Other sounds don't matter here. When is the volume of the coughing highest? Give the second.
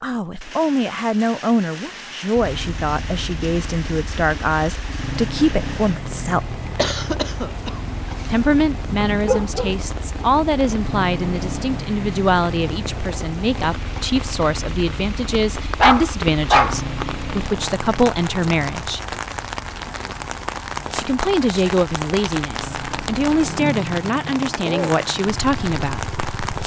7 s.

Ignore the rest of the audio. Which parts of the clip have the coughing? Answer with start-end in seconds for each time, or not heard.
6.8-8.4.